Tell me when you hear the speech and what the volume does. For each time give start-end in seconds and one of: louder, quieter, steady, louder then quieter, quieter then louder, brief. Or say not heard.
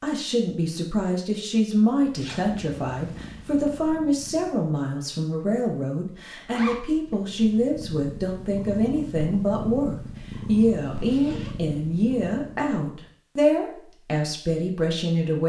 0.0-15.4 steady.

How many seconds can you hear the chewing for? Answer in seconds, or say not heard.
not heard.